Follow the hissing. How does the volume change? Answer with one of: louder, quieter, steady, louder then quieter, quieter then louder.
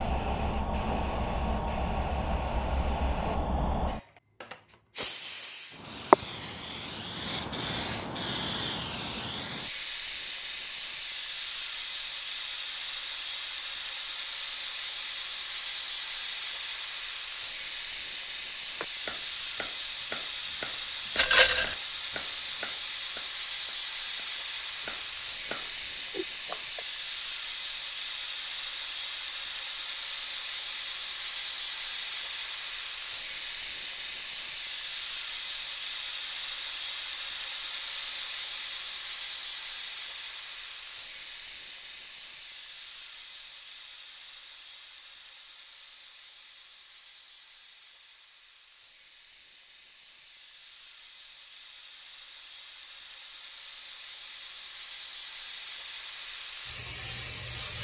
quieter.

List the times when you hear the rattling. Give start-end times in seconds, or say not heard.
21.1-21.8.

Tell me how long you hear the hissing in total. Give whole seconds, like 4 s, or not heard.
58 s.